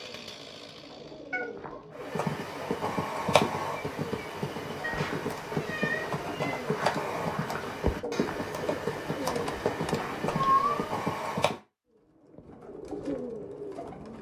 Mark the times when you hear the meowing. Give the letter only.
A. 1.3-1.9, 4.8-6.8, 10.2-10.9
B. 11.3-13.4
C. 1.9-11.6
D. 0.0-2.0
A.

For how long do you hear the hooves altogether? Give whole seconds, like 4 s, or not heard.
10 s.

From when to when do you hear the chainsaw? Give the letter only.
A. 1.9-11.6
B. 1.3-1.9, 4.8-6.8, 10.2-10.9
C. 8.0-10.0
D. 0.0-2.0
D.